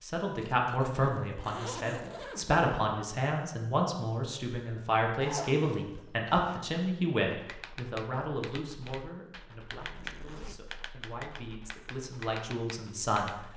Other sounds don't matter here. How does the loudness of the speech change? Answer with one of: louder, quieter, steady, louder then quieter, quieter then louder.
quieter.